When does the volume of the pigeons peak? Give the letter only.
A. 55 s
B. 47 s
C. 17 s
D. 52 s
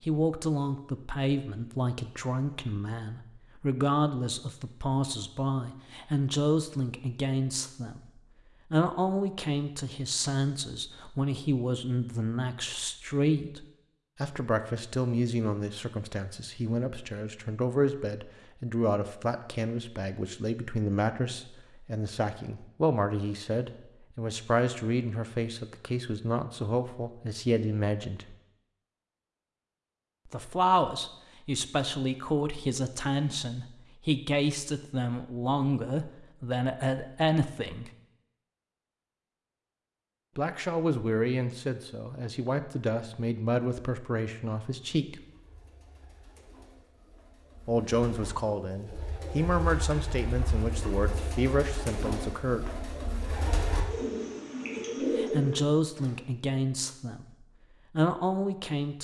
A.